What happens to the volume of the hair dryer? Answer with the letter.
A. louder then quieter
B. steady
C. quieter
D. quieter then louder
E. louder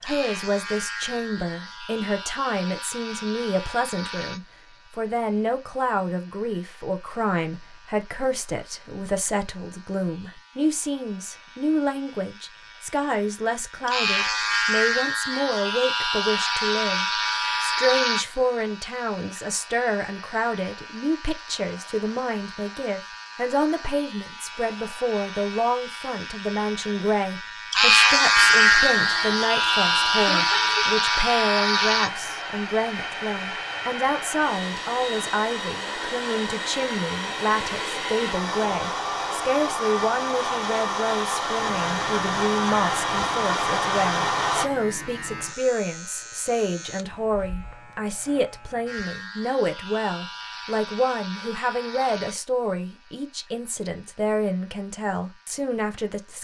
E.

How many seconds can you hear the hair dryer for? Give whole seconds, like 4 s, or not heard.
16 s.